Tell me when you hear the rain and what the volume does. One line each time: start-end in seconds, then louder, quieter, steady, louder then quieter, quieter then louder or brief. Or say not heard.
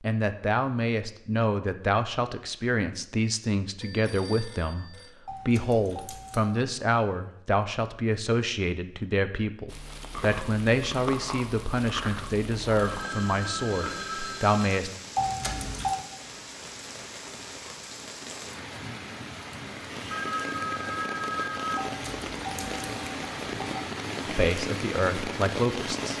9.7-26.1 louder.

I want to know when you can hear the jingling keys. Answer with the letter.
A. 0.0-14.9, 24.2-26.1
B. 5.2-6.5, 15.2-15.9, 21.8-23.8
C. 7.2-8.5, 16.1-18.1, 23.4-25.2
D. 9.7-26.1
B.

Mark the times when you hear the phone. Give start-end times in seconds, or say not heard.
3.8-5.2, 12.8-14.8, 20.1-21.9.